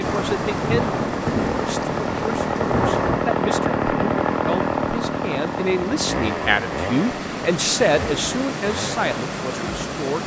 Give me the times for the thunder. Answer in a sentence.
The thunder can be heard from 0.0 to 3.2 s.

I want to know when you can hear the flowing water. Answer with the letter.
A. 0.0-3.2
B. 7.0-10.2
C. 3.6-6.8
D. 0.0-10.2
D.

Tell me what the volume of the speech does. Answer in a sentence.
The volume of the speech goes up, then down.